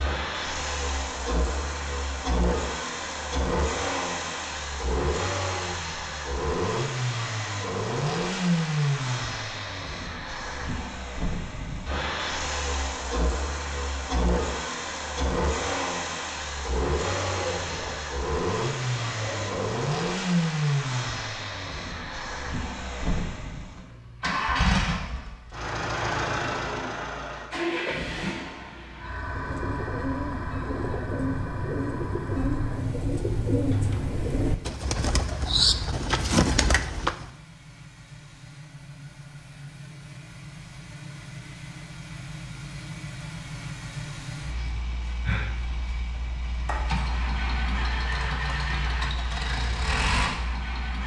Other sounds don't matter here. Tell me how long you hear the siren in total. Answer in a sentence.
You can't hear the siren here.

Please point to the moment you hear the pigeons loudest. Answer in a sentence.
The loudest moment of the pigeons is at 36 seconds.